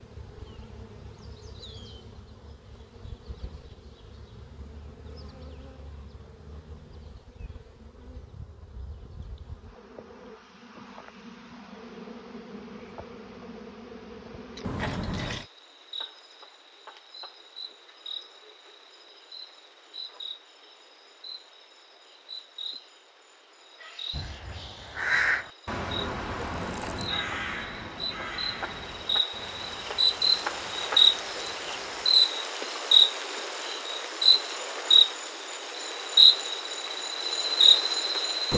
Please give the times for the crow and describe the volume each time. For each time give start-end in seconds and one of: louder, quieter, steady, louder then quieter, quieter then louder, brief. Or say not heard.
24.1-32.1 quieter.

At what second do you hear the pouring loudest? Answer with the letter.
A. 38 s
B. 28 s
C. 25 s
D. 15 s
D.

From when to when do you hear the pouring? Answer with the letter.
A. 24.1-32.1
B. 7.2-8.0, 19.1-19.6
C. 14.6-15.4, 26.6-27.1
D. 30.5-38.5
C.